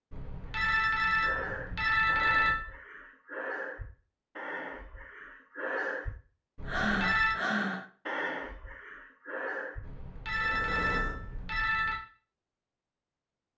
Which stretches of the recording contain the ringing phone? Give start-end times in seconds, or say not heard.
0.1-2.6, 6.5-7.3, 9.8-12.0.